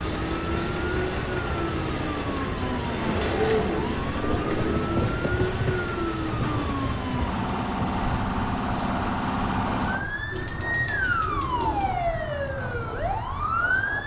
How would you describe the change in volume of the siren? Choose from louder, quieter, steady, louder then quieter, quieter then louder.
steady.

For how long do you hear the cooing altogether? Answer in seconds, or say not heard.
4 s.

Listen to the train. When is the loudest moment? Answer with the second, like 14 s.
5 s.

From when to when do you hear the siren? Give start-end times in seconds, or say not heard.
0.0-14.0.